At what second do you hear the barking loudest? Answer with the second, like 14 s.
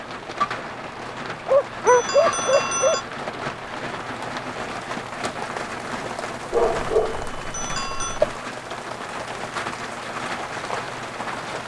2 s.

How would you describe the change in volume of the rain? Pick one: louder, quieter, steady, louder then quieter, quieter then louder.
steady.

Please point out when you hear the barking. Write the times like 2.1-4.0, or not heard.
1.4-3.0, 6.5-8.1.